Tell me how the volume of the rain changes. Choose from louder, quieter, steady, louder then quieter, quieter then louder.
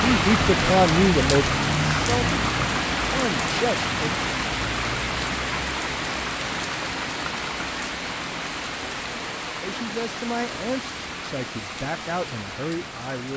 quieter.